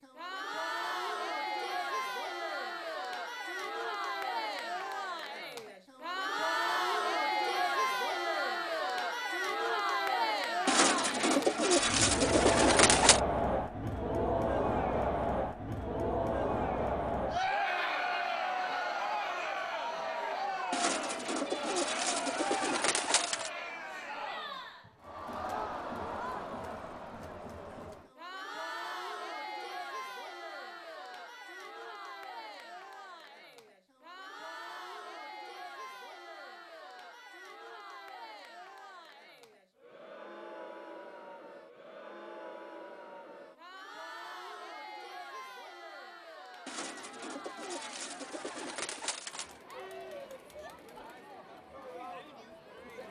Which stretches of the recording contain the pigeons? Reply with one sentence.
The pigeons can be heard from 10.7 to 13.2 s, from 20.7 to 23.5 s and from 46.6 to 49.6 s.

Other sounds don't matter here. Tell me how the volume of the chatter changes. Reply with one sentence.
The loudness of the chatter goes down.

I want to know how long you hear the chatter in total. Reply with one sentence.
The chatter can be heard for 53 seconds in total.